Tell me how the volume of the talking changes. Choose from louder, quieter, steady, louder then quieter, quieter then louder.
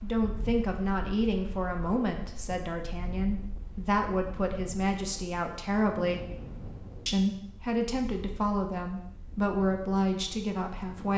steady.